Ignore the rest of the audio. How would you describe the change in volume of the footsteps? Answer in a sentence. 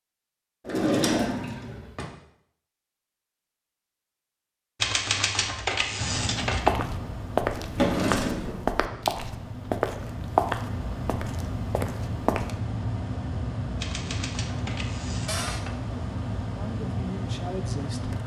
The loudness of the footsteps goes down.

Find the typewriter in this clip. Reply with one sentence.
The typewriter can be heard from 4.8 to 6.7 s and from 13.8 to 15.7 s.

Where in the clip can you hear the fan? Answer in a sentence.
You can hear the fan from 6.0 to 18.2 s.